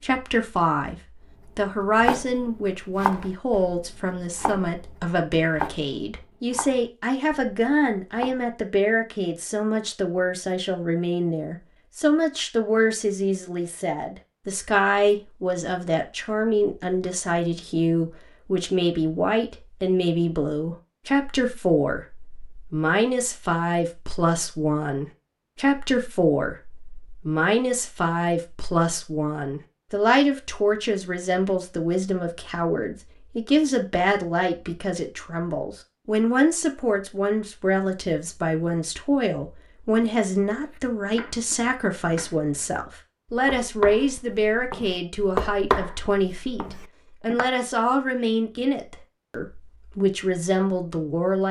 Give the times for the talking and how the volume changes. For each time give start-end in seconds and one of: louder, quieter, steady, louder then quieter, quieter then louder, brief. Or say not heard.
0.0-0.9 brief
1.6-51.4 steady.